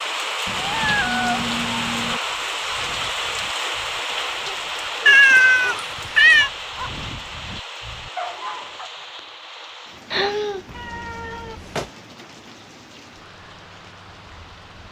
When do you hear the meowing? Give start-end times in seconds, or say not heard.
0.5-2.2, 5.0-6.5, 10.1-11.9.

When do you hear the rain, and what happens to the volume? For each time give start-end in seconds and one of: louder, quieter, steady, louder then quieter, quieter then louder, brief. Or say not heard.
0.0-14.8 quieter.